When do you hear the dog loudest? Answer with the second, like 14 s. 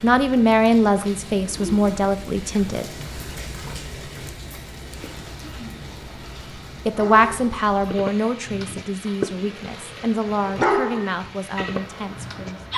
11 s.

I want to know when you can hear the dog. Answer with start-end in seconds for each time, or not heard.
7.0-12.7.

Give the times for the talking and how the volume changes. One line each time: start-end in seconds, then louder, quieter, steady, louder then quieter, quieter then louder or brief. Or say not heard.
0.0-2.9 brief
6.8-12.6 quieter.